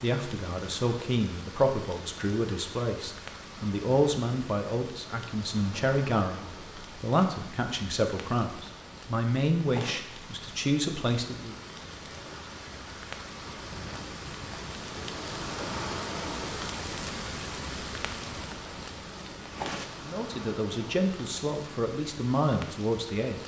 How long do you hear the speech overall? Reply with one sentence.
You can hear the speech for 15 seconds altogether.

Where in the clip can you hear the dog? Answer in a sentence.
You can't hear the dog here.